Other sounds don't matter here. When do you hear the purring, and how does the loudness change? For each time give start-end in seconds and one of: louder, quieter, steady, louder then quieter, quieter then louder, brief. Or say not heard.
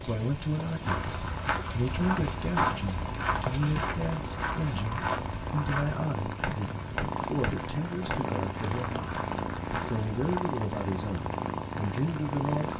0.0-12.7 louder.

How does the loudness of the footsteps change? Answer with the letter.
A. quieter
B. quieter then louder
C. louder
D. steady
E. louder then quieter
A.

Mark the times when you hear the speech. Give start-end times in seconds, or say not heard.
0.0-12.7.